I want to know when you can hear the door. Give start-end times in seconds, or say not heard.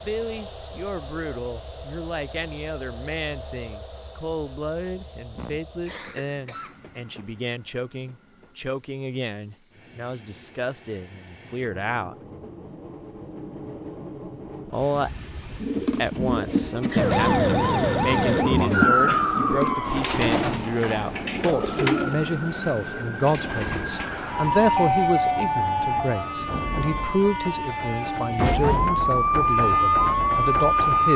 not heard.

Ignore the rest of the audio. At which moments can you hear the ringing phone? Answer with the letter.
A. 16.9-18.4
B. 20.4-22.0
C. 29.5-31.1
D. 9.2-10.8
A.